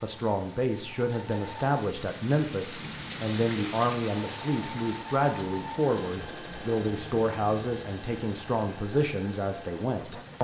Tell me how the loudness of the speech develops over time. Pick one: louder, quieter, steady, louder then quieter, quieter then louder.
steady.